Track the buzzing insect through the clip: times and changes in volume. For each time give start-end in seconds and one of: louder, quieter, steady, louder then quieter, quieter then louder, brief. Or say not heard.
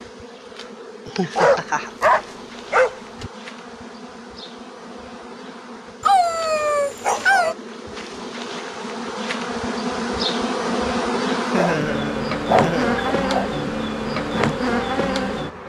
0.0-15.6 louder.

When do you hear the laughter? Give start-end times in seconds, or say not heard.
1.1-1.9, 11.4-13.0.